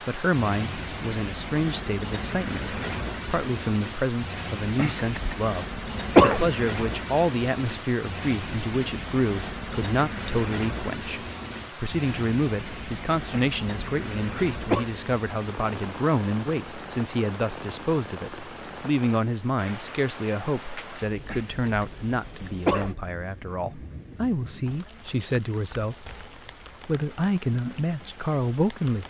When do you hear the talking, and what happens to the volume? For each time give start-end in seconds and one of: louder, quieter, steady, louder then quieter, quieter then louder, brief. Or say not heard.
0.1-26.1 steady
26.9-29.0 brief.